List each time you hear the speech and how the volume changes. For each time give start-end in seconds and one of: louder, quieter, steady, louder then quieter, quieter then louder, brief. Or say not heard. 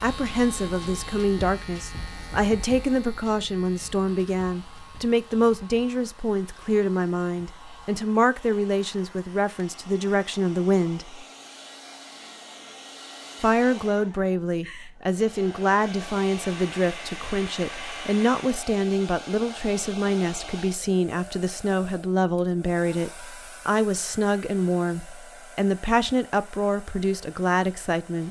0.0-11.2 steady
13.4-28.2 steady.